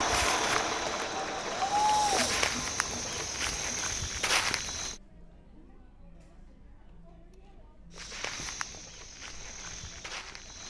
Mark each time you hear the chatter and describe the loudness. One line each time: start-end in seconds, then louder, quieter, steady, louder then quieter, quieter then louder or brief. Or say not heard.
0.0-10.6 quieter.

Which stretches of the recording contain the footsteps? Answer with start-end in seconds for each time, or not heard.
0.0-5.0, 7.9-10.6.